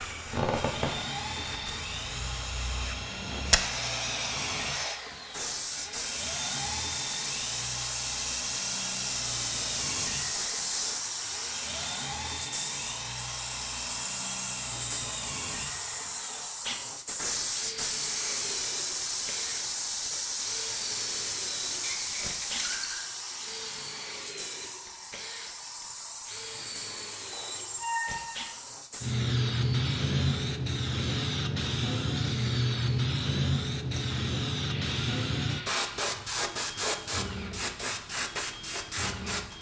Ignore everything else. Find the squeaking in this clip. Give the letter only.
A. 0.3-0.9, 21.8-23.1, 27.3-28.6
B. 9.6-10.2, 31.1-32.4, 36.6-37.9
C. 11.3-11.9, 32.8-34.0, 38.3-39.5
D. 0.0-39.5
A.